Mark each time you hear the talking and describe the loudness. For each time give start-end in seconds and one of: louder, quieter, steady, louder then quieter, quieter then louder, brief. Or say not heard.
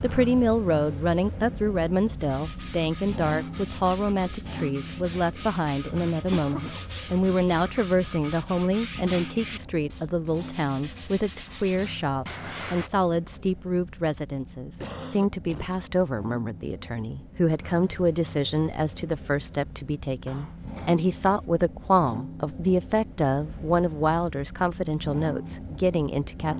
0.0-26.5 steady.